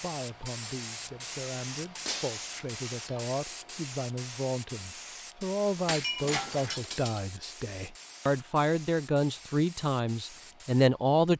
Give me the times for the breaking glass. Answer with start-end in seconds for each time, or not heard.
2.0-3.2, 5.8-7.2.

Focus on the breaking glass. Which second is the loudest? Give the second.
6 s.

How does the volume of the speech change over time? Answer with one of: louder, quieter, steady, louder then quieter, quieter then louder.
louder.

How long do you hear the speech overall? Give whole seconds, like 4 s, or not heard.
11 s.